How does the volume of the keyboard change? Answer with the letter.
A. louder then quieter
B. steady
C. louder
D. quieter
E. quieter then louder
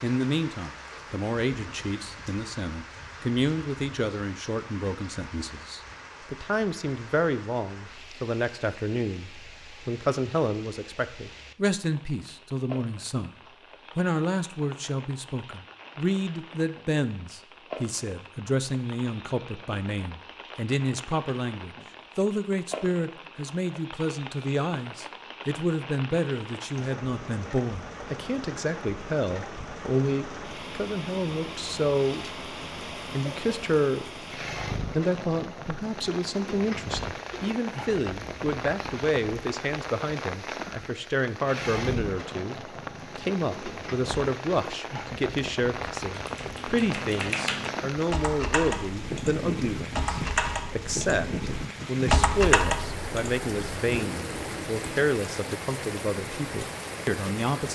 A.